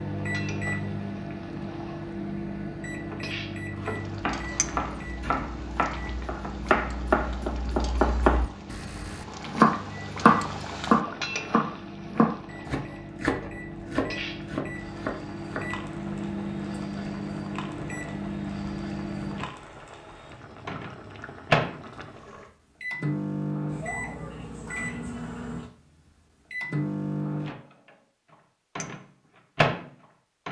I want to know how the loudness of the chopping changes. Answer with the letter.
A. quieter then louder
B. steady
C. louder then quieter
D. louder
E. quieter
C.